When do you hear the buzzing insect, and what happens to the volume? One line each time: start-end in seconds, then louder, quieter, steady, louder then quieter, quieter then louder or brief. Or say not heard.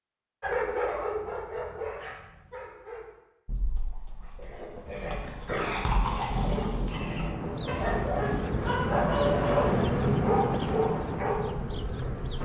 7.3-12.4 louder then quieter.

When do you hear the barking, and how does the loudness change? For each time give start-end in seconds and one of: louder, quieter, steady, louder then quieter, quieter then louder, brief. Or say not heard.
0.4-11.6 quieter then louder.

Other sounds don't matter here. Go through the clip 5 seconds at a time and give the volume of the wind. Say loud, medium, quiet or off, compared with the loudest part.
off, loud, loud.